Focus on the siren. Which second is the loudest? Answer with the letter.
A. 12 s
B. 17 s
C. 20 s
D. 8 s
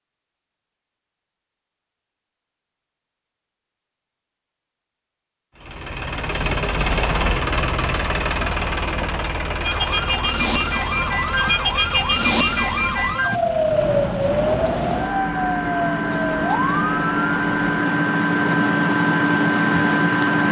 A.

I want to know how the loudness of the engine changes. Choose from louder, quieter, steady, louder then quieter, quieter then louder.
quieter then louder.